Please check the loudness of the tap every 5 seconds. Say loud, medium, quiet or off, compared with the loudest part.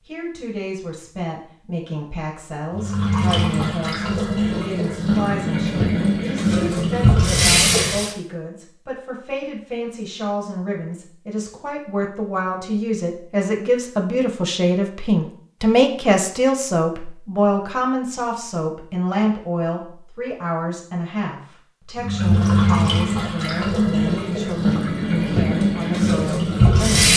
medium, loud, off, off, loud, loud.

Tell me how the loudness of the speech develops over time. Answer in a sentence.
The volume of the speech goes up, then down.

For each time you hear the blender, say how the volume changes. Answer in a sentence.
You can't hear the blender here.